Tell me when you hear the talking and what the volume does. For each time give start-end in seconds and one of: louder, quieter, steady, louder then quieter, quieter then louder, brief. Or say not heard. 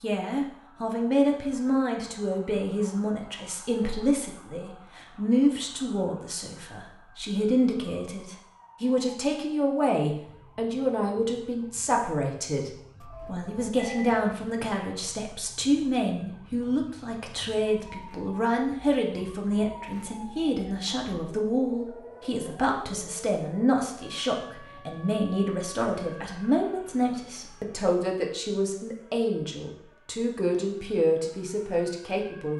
0.0-32.5 steady.